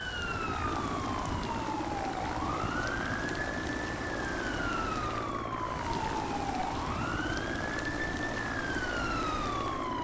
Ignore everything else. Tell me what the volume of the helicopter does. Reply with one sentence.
The loudness of the helicopter stays about the same.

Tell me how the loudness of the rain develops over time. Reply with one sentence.
The volume of the rain stays about the same.